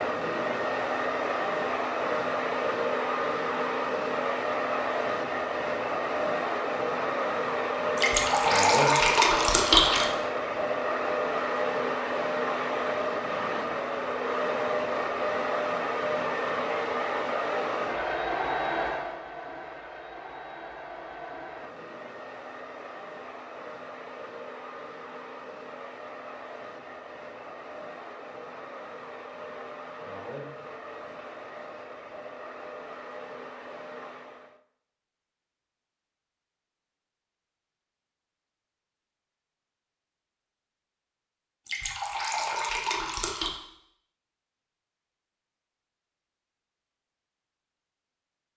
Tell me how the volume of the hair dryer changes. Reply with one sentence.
The volume of the hair dryer goes down.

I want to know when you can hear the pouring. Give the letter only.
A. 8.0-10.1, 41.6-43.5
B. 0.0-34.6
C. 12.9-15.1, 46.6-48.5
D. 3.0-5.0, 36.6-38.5
A.